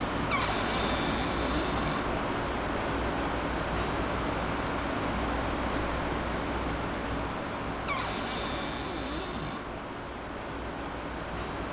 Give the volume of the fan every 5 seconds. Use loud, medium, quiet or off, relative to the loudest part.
loud, loud, medium.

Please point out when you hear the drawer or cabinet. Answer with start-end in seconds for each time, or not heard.
0.3-2.0, 7.8-9.6.